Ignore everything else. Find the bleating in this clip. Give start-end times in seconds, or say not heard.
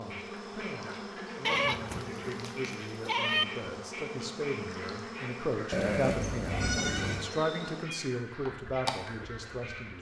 1.4-3.5, 5.7-7.3.